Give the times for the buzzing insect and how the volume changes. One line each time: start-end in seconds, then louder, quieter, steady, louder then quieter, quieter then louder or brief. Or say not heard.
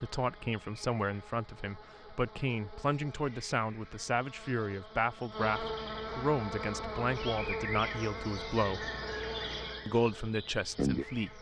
0.0-11.3 louder.